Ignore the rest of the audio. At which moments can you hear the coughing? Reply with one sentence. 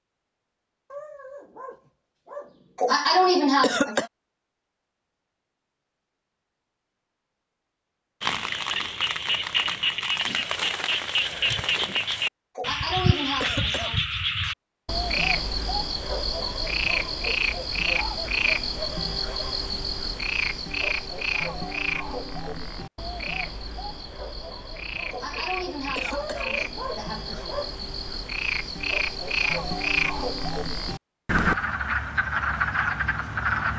You can hear the coughing from 2.8 to 4.1 s, from 12.6 to 14.0 s and from 25.1 to 27.6 s.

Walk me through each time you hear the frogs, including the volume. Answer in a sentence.
You can hear the frogs from 8.2 to 33.7 s, getting quieter then louder.